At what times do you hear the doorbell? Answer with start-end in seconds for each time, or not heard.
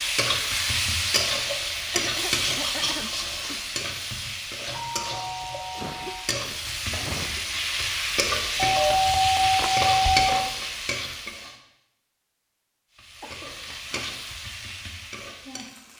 4.7-6.2, 8.6-10.5.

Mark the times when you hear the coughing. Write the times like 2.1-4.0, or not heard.
1.9-3.5, 5.7-7.5, 13.2-14.2.